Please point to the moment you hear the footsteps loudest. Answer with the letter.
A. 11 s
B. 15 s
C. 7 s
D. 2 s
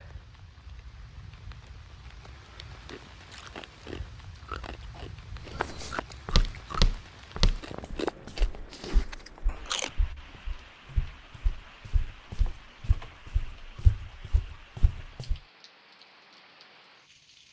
C.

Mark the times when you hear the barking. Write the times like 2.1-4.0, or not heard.
not heard.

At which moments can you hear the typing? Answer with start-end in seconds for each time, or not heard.
not heard.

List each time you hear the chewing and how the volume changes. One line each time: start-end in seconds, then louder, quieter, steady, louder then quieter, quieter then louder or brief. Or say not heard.
2.9-9.9 louder then quieter.